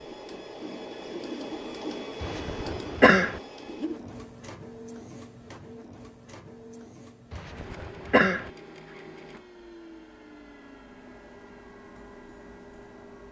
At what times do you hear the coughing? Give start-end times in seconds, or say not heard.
2.2-3.4, 7.3-8.5.